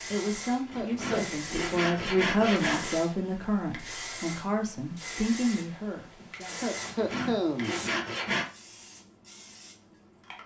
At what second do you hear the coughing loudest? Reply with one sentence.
The loudest moment of the coughing is at 7 seconds.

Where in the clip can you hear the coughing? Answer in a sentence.
You can hear the coughing from 0.8 to 1.4 s and from 6.6 to 7.8 s.